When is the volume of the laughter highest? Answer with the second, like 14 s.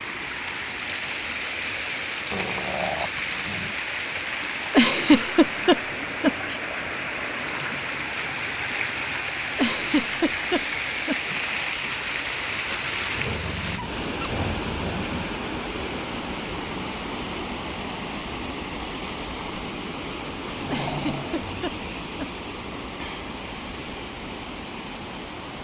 5 s.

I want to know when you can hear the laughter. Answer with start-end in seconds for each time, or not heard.
4.7-6.5, 9.6-11.3, 20.6-22.2.